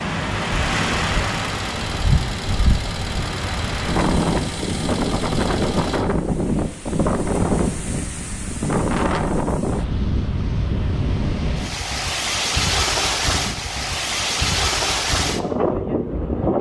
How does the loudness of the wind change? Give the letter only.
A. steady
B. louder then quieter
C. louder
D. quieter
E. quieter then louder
A.